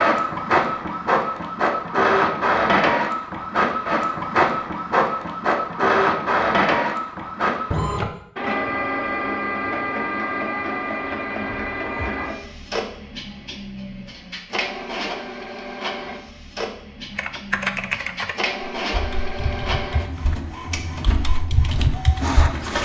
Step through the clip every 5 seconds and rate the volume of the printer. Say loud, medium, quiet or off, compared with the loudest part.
loud, loud, medium, medium, medium.